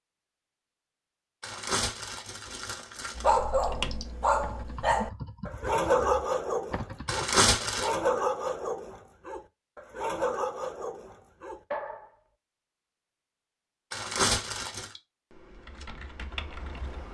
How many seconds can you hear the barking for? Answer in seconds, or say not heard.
9 s.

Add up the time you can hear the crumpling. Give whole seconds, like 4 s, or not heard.
4 s.